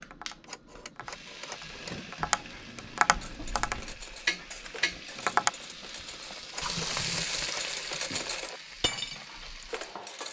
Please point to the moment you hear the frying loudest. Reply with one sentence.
The loudest moment of the frying is at 7 seconds.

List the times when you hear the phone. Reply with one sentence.
The phone can be heard from 0.3 to 1.9 s and from 6.4 to 8.0 s.